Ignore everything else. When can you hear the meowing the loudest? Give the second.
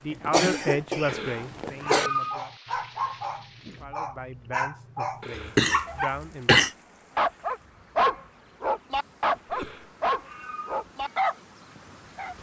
2 s.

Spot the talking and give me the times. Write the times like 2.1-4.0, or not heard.
0.0-2.5, 3.8-7.2.